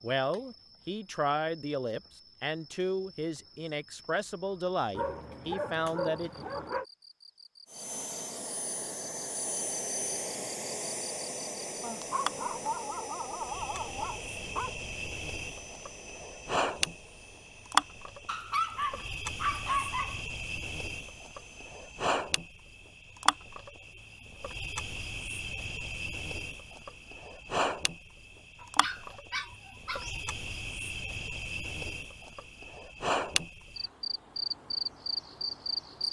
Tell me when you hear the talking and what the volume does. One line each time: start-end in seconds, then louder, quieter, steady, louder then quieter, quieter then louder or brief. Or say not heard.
0.0-6.5 steady.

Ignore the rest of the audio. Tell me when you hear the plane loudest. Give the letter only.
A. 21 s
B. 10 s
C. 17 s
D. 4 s
B.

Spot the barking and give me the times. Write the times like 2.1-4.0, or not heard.
5.0-6.8, 11.8-14.8, 18.2-20.2, 28.6-30.1.